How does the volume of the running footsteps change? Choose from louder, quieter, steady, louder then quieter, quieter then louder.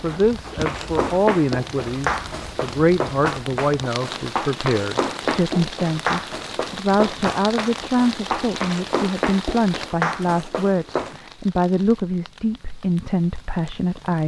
steady.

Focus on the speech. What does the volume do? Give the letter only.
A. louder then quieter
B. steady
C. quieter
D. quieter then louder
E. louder
B.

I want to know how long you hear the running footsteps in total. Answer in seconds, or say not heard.
11 s.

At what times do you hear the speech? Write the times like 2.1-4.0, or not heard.
0.0-14.2.